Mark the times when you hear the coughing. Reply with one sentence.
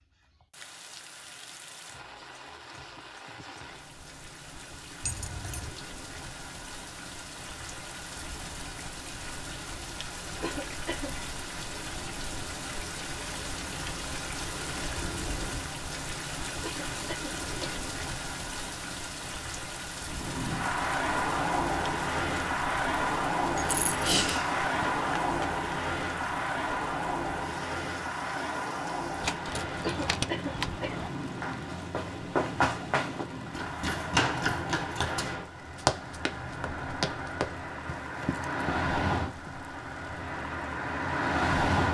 You can hear the coughing from 10.4 to 11.1 s, from 16.6 to 17.9 s and from 29.8 to 31.1 s.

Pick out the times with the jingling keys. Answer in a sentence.
The jingling keys can be heard from 5.0 to 5.7 s, from 23.6 to 25.6 s and from 29.2 to 31.1 s.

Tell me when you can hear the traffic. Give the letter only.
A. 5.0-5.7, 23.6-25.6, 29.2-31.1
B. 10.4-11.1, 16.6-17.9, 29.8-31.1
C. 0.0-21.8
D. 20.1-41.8
D.